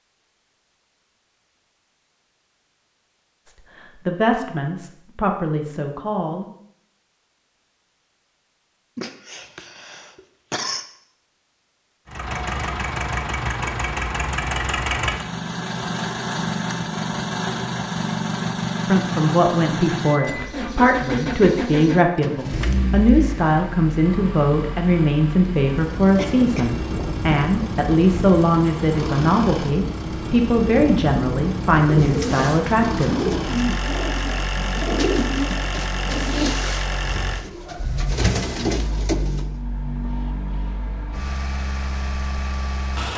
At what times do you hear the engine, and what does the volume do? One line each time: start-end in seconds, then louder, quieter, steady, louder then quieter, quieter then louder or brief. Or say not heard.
12.1-43.1 quieter.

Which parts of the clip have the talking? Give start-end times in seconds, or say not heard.
3.5-6.5, 18.9-33.1.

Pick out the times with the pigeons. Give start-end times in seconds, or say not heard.
31.8-39.5.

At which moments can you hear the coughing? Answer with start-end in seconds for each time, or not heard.
8.9-10.8, 26.1-26.8.